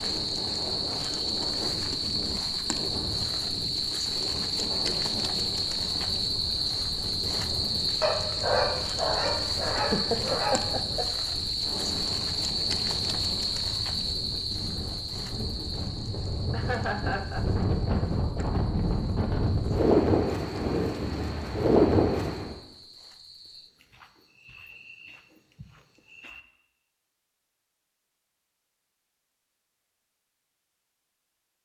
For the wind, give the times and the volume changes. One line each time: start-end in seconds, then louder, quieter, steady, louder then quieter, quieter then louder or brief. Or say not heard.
0.0-22.6 louder.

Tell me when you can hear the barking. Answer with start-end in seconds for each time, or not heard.
8.0-10.9.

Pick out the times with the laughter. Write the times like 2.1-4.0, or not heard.
9.8-11.1, 16.5-17.4.